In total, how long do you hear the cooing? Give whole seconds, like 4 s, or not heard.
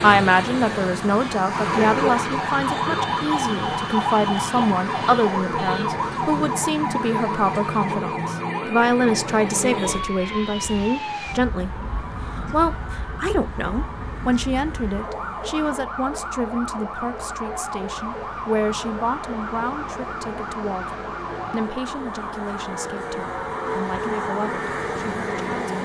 not heard.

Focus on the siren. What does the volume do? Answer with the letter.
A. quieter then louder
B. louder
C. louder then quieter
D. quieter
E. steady
D.